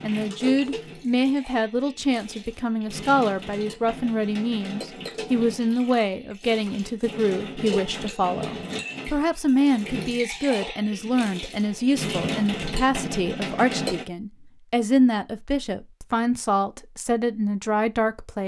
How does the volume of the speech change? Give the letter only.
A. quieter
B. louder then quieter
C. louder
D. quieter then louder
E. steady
E.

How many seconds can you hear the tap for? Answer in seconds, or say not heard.
14 s.